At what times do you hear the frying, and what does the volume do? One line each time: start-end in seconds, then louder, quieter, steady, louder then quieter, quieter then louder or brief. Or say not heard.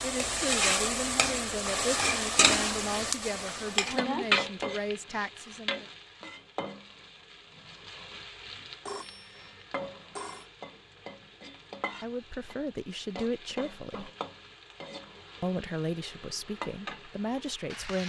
0.0-18.0 quieter.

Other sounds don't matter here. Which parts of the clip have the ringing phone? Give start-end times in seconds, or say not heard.
8.8-10.4.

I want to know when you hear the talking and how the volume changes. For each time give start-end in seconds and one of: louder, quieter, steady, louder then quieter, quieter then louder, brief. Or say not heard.
0.0-5.8 steady
12.0-14.1 brief
15.4-18.0 brief.